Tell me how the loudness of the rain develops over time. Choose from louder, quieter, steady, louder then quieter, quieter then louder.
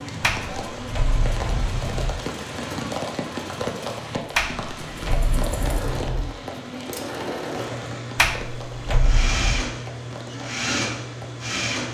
quieter.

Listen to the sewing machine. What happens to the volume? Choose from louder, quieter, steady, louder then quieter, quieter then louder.
louder.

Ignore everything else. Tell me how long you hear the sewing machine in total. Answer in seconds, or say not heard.
12 s.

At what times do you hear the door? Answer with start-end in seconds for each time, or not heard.
0.2-2.2, 4.3-6.3, 8.2-9.7.